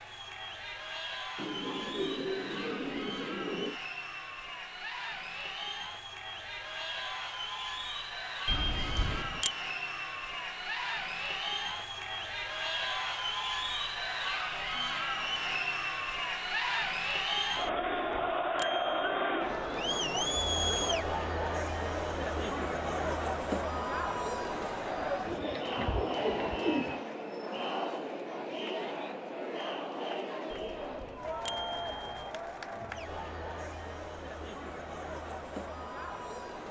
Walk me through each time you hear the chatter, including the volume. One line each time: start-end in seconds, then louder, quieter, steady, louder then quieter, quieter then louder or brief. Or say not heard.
0.0-36.6 louder then quieter.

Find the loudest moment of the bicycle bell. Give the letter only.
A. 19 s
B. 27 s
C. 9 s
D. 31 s
C.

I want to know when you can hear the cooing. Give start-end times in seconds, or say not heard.
1.4-3.8, 25.2-27.1.